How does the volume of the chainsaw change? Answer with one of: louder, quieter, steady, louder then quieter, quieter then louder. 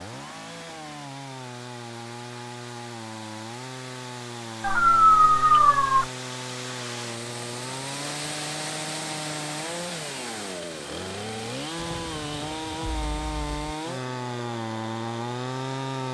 louder.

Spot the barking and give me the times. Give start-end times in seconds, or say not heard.
4.6-6.0.